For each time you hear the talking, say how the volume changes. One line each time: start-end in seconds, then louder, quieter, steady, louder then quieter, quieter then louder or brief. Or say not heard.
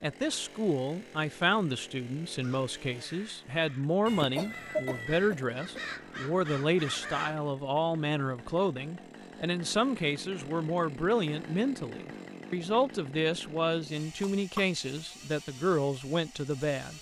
0.0-16.9 steady.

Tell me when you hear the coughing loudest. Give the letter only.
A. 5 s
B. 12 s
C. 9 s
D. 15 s
A.